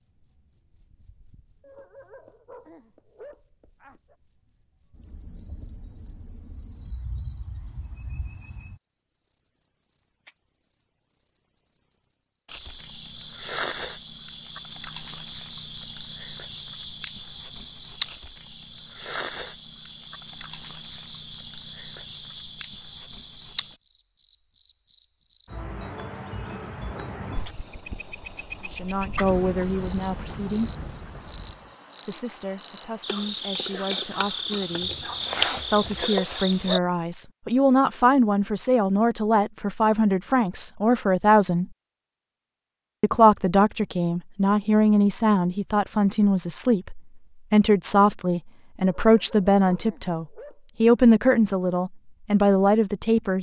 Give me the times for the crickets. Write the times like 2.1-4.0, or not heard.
0.0-36.8.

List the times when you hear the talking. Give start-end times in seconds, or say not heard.
28.7-30.7, 32.0-35.0, 35.6-41.6, 43.0-53.3.